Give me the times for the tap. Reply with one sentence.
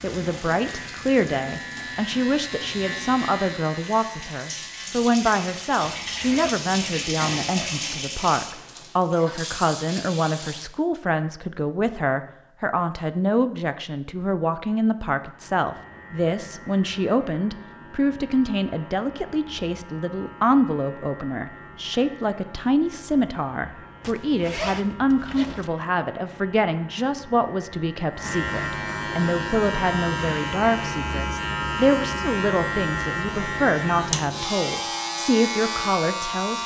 You can hear the tap from 0.0 to 10.7 s.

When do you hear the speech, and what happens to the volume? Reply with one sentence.
You can hear the speech from 0.0 to 36.6 s, at a steady volume.